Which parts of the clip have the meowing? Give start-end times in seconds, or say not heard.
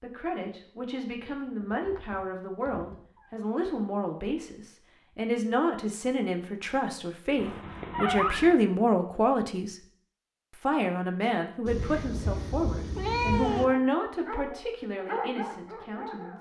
1.6-3.3, 7.3-8.6, 11.7-13.7.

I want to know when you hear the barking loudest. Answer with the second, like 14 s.
15 s.